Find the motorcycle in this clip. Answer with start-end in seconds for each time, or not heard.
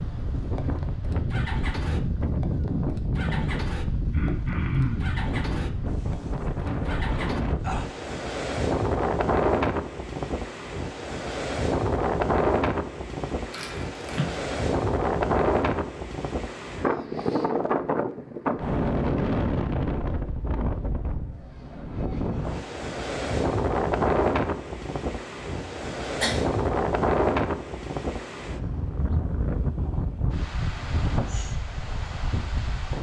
0.0-7.5.